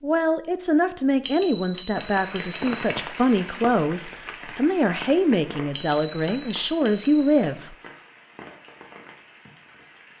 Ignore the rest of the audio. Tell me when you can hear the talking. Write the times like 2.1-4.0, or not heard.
0.0-7.8.